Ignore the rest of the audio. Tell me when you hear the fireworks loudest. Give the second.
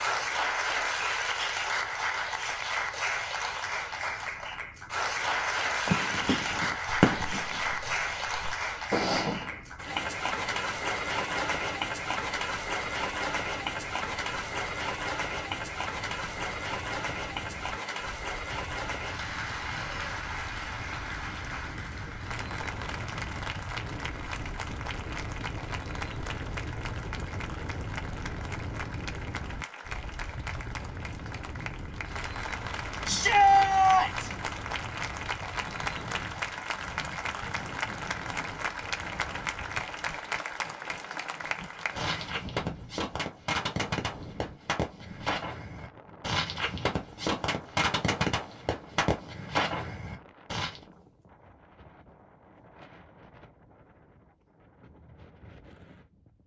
7 s.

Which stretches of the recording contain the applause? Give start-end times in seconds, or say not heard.
0.0-42.5.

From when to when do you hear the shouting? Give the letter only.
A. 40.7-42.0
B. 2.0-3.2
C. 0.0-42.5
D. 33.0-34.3
D.